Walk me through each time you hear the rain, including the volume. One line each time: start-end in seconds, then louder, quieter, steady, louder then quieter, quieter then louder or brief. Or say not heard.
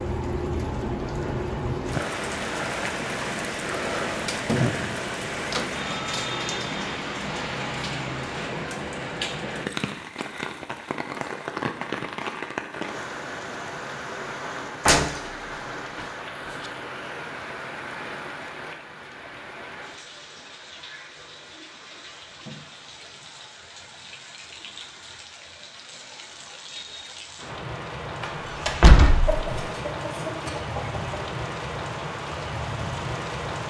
0.0-33.6 quieter then louder.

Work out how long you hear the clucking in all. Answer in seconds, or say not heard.
2 s.